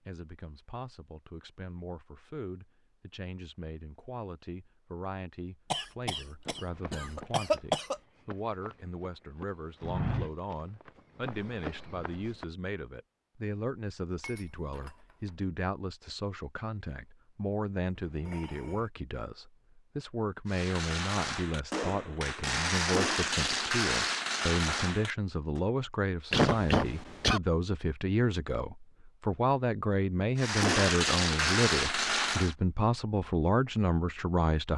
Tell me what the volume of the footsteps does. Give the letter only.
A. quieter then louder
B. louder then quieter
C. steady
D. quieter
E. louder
B.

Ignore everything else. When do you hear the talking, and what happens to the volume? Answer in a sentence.
You can hear the talking from 0.0 to 34.7 s, getting louder.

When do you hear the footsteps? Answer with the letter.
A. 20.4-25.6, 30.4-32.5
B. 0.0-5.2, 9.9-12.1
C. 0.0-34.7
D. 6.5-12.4
D.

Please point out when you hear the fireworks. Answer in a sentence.
You can hear the fireworks from 20.4 to 25.6 s and from 30.4 to 32.5 s.